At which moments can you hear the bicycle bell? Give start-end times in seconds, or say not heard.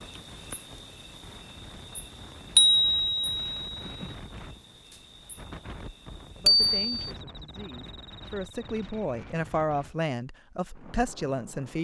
2.5-4.0, 6.5-7.1.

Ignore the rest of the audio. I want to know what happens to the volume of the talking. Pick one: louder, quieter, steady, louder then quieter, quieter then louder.
louder.